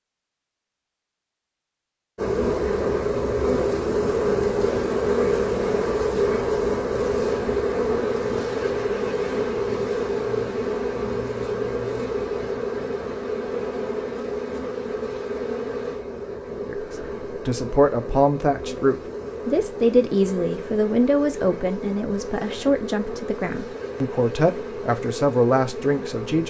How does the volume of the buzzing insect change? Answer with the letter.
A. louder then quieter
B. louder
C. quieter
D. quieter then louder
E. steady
C.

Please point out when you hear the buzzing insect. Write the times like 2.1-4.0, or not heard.
2.1-26.4.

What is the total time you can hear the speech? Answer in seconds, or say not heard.
10 s.